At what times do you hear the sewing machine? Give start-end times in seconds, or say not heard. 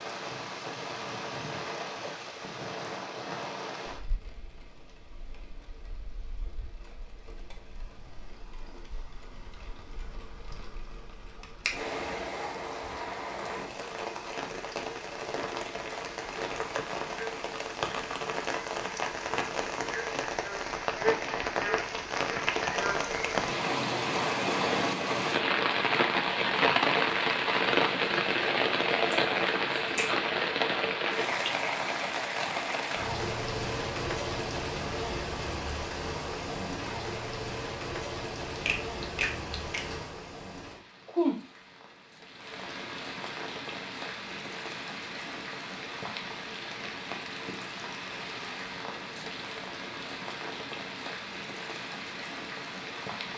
not heard.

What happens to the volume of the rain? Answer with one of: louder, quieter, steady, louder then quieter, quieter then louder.
louder then quieter.